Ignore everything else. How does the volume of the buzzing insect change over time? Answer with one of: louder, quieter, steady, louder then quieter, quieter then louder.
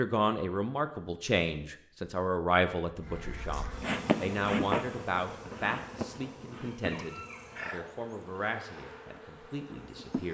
quieter.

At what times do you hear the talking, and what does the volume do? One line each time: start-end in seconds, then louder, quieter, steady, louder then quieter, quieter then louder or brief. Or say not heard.
0.0-10.2 quieter.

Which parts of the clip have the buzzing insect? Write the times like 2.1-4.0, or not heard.
3.0-10.2.